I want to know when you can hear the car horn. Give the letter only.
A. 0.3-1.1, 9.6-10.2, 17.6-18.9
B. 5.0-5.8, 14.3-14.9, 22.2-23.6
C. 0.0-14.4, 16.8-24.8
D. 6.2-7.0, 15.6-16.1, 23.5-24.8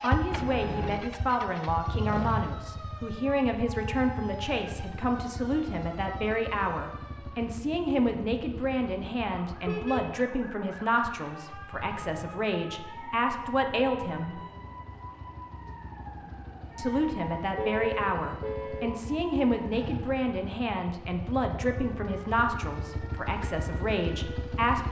A.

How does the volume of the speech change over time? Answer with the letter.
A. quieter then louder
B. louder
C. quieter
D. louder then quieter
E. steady
E.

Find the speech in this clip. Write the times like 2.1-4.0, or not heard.
0.0-14.4, 16.8-24.8.